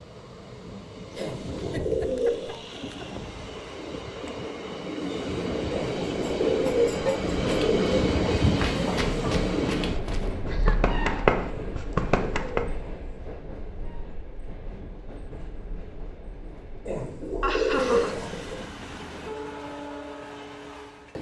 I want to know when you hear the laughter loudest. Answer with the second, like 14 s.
18 s.